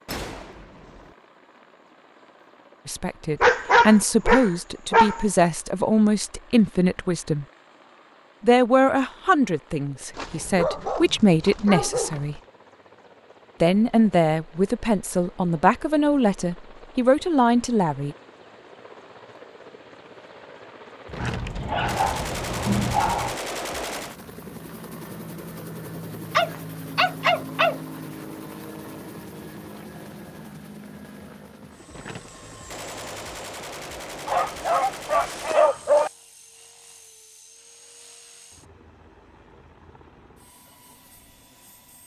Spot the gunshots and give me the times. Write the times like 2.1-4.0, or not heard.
0.1-1.1, 21.1-24.2, 31.9-35.6.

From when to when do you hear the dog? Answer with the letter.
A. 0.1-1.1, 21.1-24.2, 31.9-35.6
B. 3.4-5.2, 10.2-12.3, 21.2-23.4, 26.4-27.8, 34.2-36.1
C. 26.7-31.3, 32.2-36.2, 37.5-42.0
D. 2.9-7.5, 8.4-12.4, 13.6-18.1
B.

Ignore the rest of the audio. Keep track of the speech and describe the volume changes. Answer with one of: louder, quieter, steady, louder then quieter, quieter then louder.
steady.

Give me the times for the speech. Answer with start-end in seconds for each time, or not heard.
2.9-7.5, 8.4-12.4, 13.6-18.1.